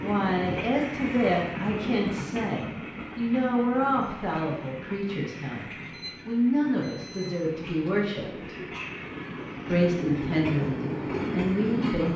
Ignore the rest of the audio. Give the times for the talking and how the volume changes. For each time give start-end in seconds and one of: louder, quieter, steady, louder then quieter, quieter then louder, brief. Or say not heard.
0.0-8.6 steady
9.7-12.1 brief.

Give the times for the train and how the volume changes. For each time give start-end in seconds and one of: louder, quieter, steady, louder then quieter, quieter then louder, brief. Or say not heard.
0.0-12.1 quieter then louder.